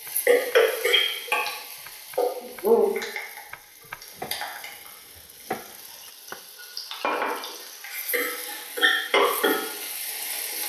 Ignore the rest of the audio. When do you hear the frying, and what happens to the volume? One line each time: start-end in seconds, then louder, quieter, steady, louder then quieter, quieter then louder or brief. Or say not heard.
0.0-10.6 quieter then louder.